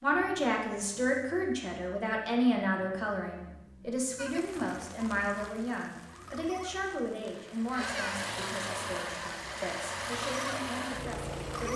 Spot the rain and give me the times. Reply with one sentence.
You can hear the rain from 4.2 to 11.7 s.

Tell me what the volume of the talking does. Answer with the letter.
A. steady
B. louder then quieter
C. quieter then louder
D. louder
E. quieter
E.